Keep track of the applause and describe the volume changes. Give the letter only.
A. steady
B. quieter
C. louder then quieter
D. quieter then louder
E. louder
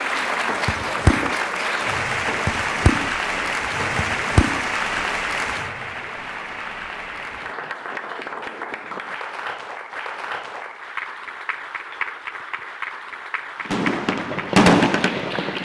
B.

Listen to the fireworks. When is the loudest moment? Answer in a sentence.
The volume of the fireworks peaks at 15 seconds.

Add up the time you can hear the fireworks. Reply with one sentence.
The fireworks can be heard for 7 seconds in total.